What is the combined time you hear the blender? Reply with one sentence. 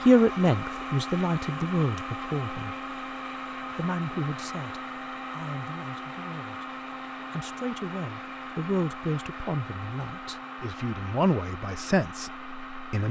The blender can be heard for 13 seconds in total.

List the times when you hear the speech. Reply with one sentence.
The speech can be heard from 0.1 to 2.8 s, from 3.5 to 6.7 s and from 7.3 to 13.0 s.